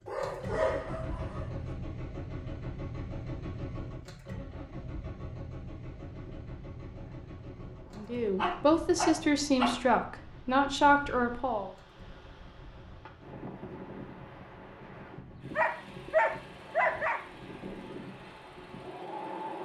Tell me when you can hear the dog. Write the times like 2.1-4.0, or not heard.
0.1-1.6, 8.0-9.8, 15.6-17.2.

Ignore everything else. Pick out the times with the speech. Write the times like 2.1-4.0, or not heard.
8.0-11.7.